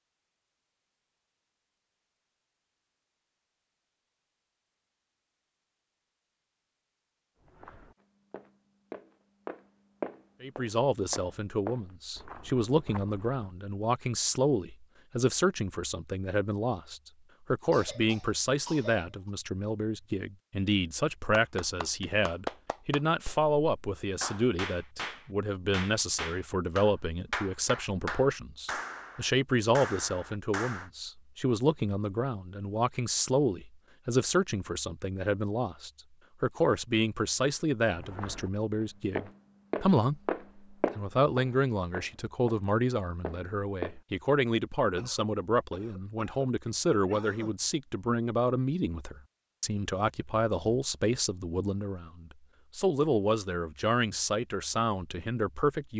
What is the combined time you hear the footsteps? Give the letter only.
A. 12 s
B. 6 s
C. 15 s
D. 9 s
A.